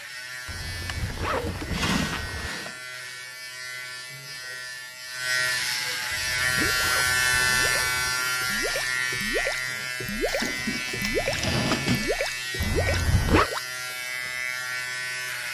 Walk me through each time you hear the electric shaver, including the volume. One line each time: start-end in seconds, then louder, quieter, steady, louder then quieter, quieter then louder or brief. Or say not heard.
0.0-15.4 louder then quieter.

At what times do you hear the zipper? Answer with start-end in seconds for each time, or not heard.
0.5-2.5, 6.1-8.1, 12.6-13.5.